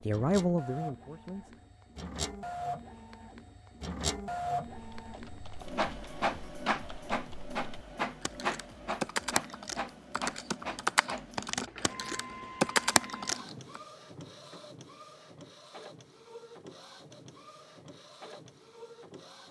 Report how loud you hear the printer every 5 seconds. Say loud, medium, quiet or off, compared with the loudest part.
loud, loud, medium, quiet.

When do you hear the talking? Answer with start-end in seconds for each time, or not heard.
0.0-1.6.